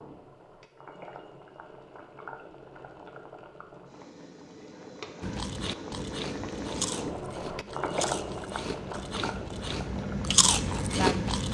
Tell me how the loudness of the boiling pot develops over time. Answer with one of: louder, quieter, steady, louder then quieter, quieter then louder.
louder.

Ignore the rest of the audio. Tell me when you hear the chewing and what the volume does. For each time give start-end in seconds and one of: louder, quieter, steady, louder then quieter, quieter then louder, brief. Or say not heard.
5.2-11.5 louder.